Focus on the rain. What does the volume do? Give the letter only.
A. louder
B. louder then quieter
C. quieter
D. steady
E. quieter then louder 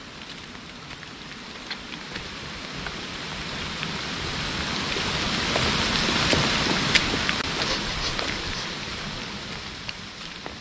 B.